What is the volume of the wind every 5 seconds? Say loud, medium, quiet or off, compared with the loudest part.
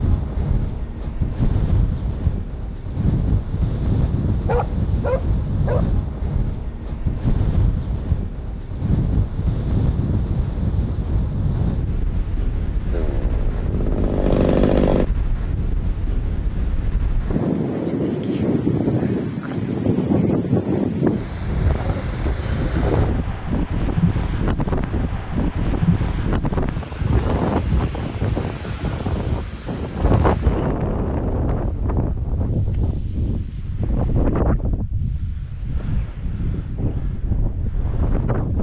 loud, loud, medium, loud, loud, loud, loud, medium.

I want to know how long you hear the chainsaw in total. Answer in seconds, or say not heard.
2 s.